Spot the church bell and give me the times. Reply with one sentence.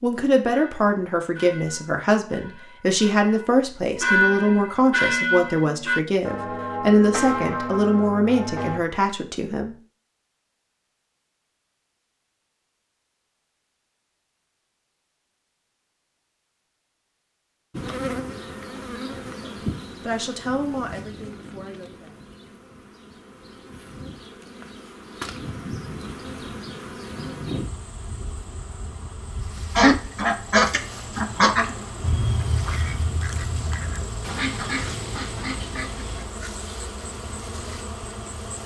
You can hear the church bell from 0.5 to 8.8 s.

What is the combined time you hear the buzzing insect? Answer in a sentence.
You can hear the buzzing insect for 21 seconds altogether.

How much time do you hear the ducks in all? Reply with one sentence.
The ducks can be heard for 7 seconds in total.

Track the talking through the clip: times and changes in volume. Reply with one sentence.
The talking can be heard from 0.0 to 9.8 s, at a steady volume; and briefly from 19.2 to 22.2 s.